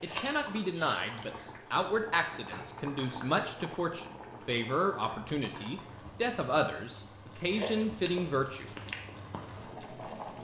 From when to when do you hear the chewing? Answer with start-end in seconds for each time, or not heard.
0.0-1.9, 7.3-10.3.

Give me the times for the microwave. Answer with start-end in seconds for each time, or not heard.
not heard.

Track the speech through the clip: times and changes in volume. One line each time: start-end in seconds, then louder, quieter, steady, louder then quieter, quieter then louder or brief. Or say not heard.
0.0-8.7 steady.